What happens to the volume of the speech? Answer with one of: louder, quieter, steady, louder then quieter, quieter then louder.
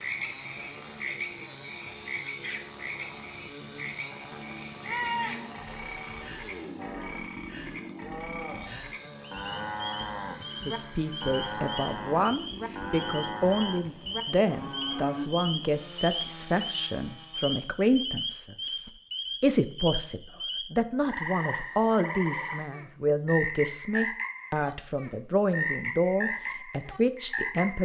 steady.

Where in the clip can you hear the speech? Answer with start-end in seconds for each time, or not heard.
10.7-27.8.